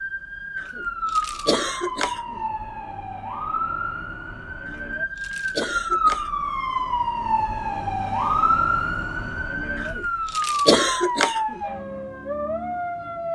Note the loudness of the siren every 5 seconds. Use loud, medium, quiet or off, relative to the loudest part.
medium, loud, loud.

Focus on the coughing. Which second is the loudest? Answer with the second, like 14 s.
11 s.